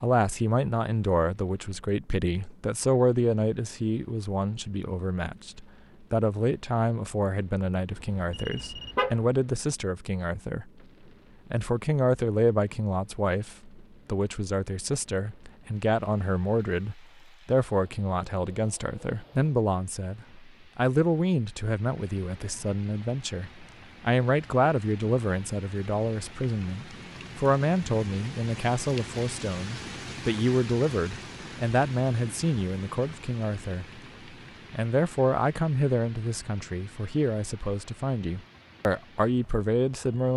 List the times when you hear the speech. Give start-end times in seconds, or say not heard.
0.0-10.7, 11.5-34.0, 34.7-40.3.